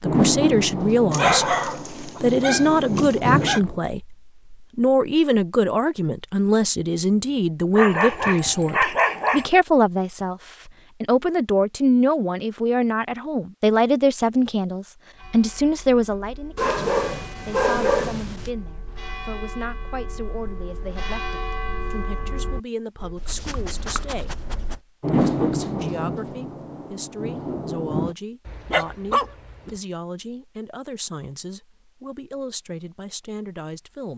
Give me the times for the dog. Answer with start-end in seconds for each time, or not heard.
1.1-3.6, 7.8-9.5, 16.6-18.5, 23.1-24.8, 28.4-29.8.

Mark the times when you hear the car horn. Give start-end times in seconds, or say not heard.
not heard.